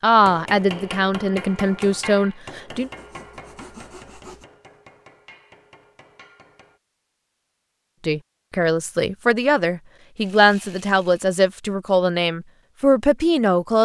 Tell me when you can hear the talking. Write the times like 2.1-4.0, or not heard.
0.0-2.9, 8.1-13.8.